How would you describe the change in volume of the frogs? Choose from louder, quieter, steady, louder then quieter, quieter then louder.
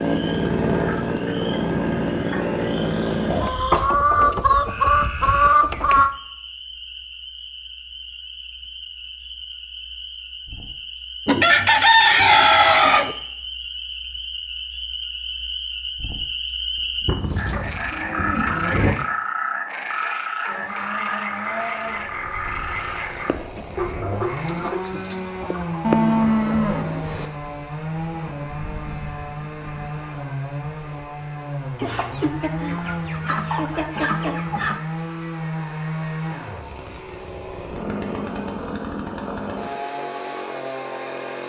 louder.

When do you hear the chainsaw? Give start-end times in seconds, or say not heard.
0.0-3.5, 20.4-41.4.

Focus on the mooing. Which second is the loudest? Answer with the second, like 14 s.
26 s.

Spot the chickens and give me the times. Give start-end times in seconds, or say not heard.
3.4-6.1, 11.2-13.2, 23.2-26.0, 31.8-34.8.